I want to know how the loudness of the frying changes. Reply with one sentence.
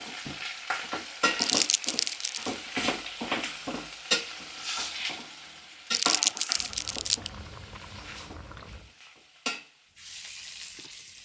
The volume of the frying goes down, then up.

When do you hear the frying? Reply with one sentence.
You can hear the frying from 0.0 to 11.2 s.